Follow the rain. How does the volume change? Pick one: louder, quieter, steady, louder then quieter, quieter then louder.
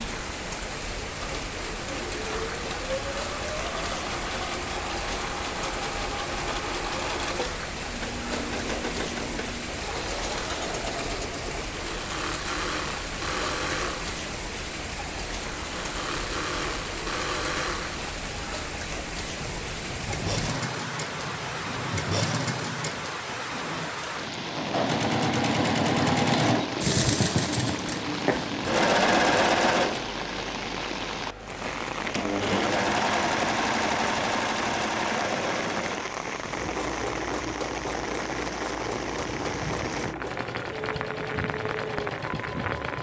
steady.